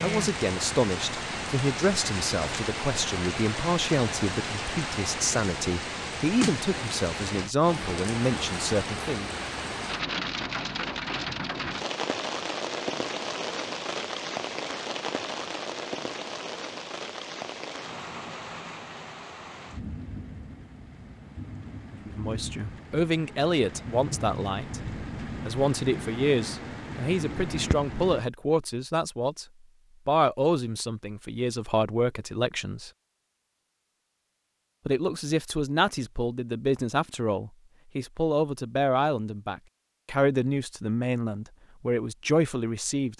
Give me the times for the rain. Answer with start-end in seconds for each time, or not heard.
0.0-28.2.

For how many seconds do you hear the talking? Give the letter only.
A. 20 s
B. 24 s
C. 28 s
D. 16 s
C.